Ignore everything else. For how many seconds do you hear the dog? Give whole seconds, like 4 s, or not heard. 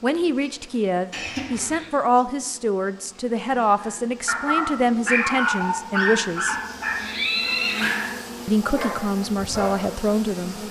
6 s.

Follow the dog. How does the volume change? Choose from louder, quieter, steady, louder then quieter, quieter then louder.
quieter.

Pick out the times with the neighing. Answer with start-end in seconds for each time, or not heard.
1.1-1.9, 6.3-8.0.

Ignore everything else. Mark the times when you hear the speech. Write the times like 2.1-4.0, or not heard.
0.0-6.5, 8.4-10.6.